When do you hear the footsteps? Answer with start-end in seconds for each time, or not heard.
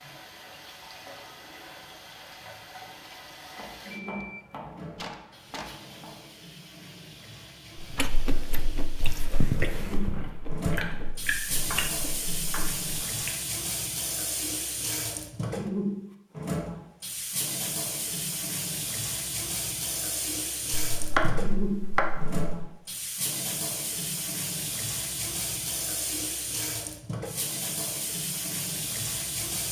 not heard.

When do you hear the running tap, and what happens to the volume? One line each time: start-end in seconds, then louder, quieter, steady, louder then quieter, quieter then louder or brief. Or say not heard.
0.0-29.6 louder.